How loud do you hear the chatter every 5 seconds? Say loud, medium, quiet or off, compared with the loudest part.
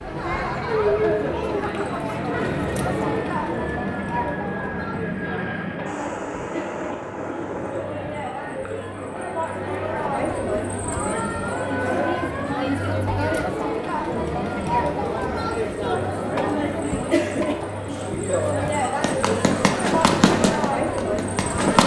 loud, medium, loud, loud, loud.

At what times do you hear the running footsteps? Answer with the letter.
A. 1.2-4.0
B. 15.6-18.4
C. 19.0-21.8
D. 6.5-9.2
C.